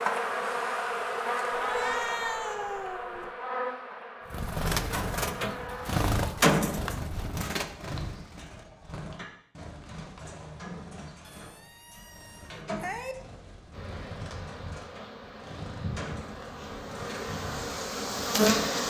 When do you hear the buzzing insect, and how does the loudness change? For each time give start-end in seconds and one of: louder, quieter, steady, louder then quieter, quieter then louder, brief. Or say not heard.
0.0-6.0 quieter
13.7-18.8 louder.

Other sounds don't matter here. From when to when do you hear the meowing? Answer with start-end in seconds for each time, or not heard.
1.5-3.3, 11.2-13.2.